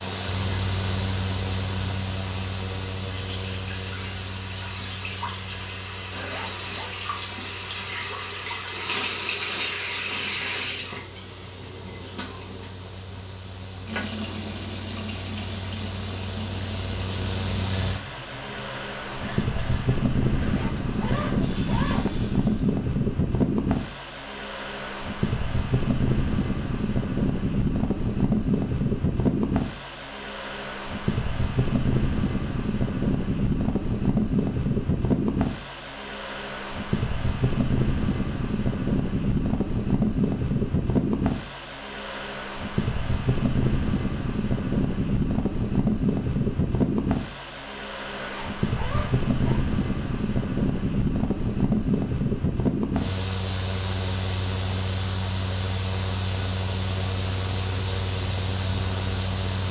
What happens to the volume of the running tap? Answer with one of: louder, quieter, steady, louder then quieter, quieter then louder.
louder then quieter.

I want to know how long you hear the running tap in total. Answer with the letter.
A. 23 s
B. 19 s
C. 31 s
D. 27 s
A.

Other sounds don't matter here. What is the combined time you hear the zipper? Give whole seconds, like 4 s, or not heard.
4 s.